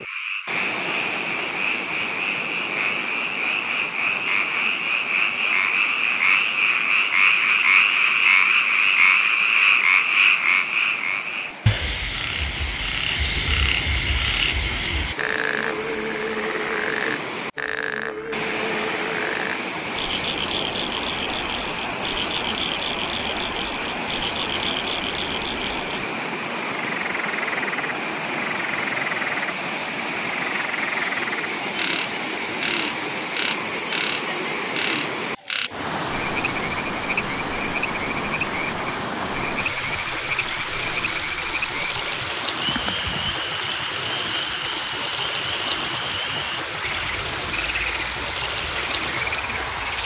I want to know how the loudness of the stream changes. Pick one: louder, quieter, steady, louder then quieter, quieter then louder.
louder.